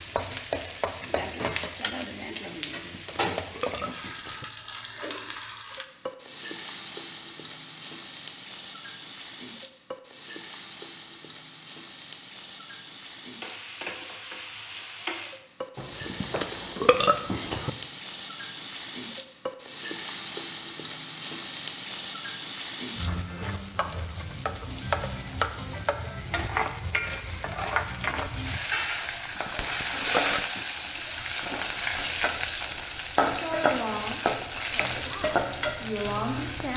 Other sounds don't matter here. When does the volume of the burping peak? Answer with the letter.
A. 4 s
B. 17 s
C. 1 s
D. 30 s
B.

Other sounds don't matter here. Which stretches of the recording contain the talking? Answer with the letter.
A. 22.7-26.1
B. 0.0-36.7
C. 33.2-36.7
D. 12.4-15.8
C.